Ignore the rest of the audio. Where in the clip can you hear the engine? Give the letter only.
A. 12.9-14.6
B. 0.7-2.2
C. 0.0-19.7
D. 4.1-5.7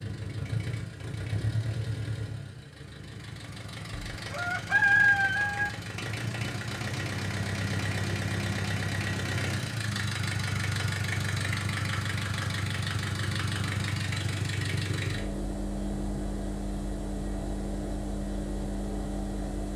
C.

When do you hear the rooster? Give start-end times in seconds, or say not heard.
4.1-5.7.